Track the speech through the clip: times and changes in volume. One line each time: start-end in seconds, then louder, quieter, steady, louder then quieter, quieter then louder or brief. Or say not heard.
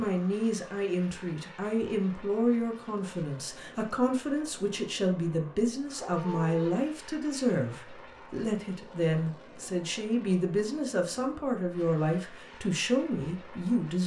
0.0-14.0 steady.